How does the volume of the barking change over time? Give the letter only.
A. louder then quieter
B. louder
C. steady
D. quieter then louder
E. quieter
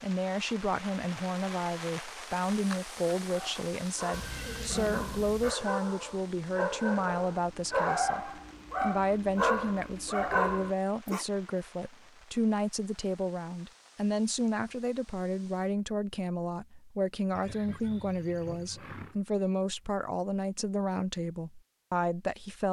B.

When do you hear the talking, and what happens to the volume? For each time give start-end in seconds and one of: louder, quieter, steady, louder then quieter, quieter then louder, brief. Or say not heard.
0.0-22.6 steady.